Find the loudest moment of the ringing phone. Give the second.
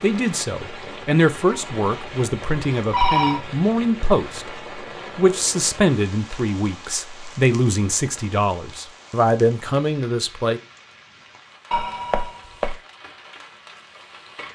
3 s.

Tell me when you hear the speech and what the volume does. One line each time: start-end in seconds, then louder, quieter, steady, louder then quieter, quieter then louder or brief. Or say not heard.
0.0-10.6 steady.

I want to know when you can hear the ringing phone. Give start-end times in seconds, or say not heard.
1.5-3.5, 11.7-12.8.